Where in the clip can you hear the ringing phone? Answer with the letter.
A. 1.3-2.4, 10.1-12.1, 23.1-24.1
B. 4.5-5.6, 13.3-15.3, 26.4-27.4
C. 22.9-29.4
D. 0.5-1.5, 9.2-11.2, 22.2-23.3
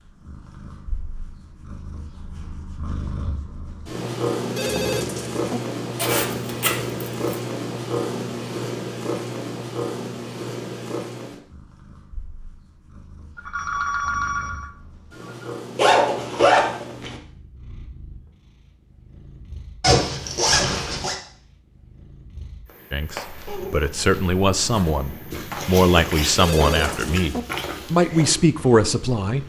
B.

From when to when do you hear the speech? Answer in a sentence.
The speech can be heard from 22.9 to 29.4 s.